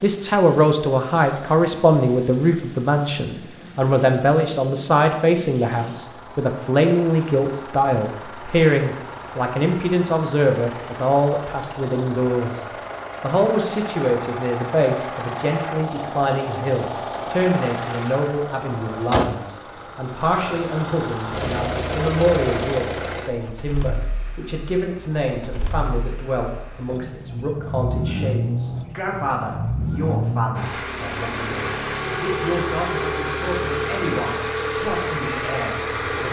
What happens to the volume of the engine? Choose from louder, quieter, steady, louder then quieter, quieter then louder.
louder.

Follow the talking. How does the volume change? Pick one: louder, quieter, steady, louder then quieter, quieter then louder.
quieter.